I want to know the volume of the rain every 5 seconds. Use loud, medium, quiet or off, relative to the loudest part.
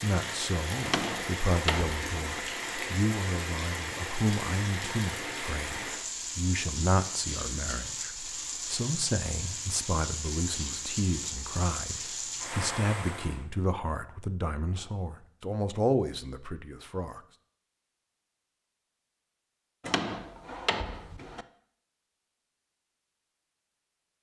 loud, loud, loud, off, off.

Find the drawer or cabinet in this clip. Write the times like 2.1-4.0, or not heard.
0.8-2.5, 19.8-21.4.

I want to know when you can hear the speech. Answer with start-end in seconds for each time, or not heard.
0.0-17.2.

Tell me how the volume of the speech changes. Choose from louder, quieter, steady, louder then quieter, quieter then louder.
steady.